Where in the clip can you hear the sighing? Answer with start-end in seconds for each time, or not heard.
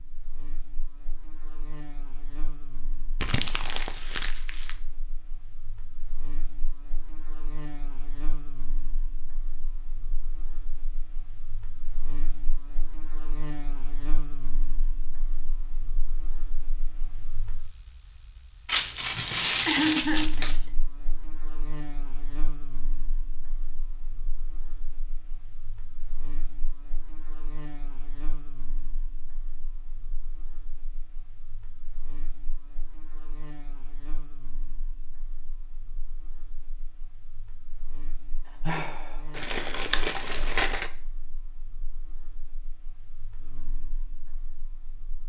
19.6-20.6, 38.2-39.2.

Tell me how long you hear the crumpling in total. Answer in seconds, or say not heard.
5 s.